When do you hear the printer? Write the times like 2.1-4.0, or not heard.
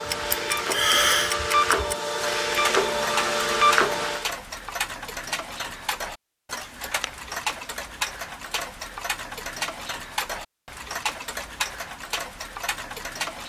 0.0-4.3.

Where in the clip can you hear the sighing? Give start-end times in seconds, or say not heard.
0.3-1.4.